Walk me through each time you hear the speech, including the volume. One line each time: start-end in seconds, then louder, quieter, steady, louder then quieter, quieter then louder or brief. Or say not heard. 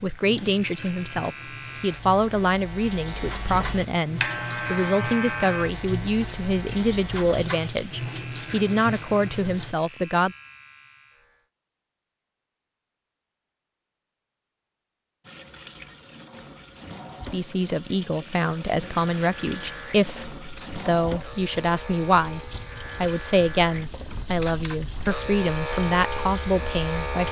0.0-10.3 steady
17.3-22.4 steady
23.0-27.2 steady.